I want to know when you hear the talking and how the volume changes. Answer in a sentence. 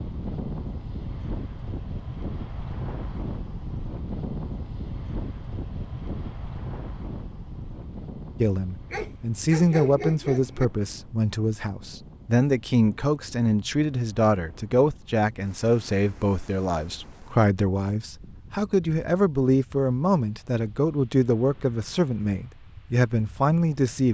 The talking can be heard from 8.4 to 24.0 s, at a steady volume.